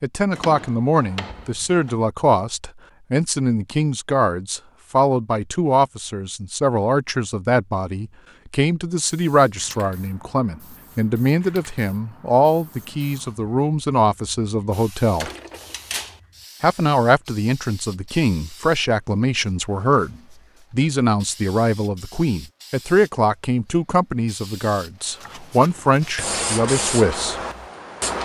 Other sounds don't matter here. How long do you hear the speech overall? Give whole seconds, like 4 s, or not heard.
26 s.